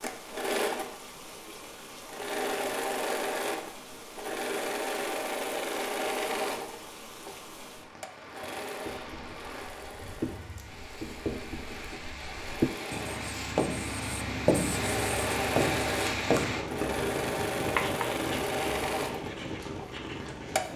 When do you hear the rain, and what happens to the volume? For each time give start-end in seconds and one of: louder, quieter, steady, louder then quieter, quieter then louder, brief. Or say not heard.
0.0-20.7 louder.